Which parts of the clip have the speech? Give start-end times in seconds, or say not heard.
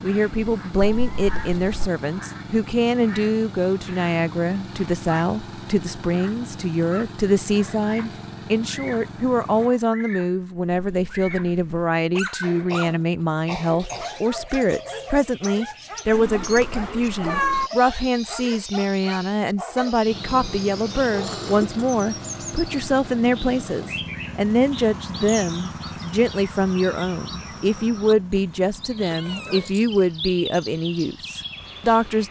0.0-32.2.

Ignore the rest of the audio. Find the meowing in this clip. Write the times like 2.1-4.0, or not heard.
0.8-1.9, 16.1-17.7, 28.9-29.8.